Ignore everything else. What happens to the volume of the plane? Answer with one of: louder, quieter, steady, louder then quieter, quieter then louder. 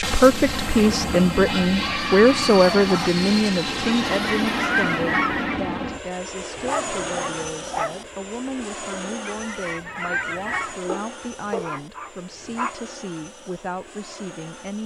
quieter.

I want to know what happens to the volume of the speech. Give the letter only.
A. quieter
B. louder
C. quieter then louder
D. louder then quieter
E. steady
A.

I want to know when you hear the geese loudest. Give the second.
5 s.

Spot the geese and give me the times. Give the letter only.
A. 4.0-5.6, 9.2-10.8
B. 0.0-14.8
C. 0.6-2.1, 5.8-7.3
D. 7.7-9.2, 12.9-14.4
A.